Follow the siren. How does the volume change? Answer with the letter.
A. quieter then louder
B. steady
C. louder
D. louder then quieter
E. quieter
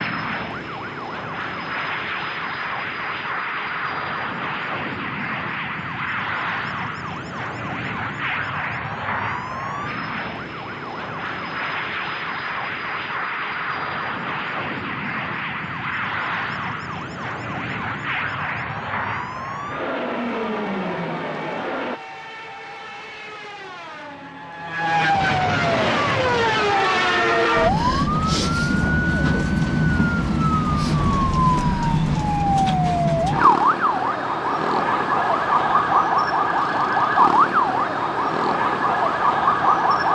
C.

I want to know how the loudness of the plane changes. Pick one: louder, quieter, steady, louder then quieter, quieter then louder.
steady.